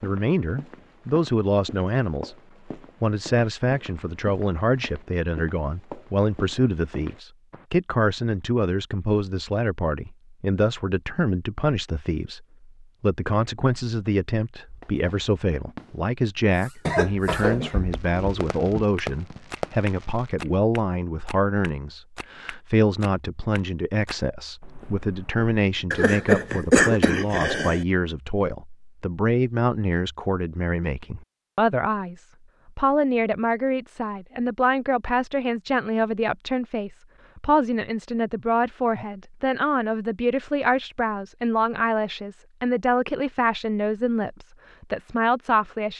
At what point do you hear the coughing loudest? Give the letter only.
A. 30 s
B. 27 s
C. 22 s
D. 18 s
B.